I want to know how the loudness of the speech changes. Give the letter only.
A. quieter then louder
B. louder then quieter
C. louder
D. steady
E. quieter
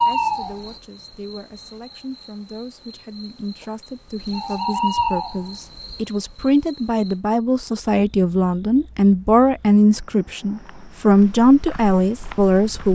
C.